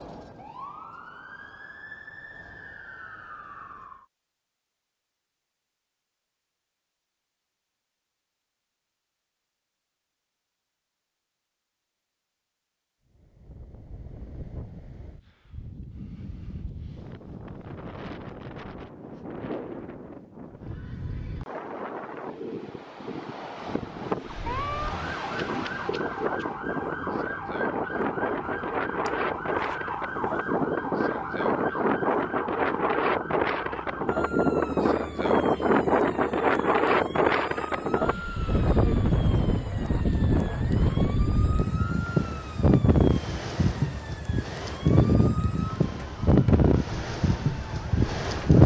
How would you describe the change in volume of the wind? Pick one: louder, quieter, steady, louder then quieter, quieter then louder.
louder.